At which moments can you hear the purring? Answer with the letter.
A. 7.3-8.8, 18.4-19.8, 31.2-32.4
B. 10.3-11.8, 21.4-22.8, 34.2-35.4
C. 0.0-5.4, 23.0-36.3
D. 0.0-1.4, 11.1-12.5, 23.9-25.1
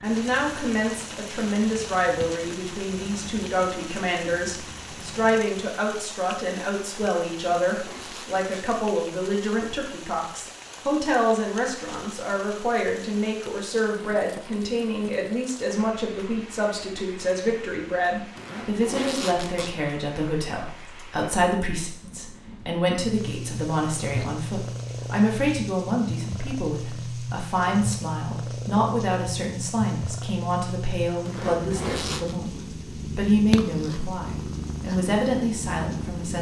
C.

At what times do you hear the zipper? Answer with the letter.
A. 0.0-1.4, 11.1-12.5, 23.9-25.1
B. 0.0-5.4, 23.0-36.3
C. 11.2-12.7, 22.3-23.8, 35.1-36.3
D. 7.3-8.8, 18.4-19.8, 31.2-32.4
D.